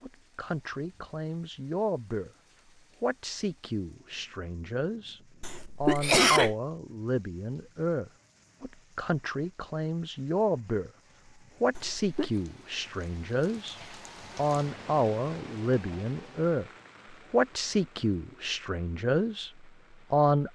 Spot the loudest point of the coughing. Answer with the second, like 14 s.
6 s.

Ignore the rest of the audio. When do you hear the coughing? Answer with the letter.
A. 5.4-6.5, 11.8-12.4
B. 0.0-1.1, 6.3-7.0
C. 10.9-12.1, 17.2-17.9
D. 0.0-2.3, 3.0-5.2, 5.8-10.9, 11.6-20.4
A.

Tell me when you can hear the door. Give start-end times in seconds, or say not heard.
not heard.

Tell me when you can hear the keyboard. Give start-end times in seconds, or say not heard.
not heard.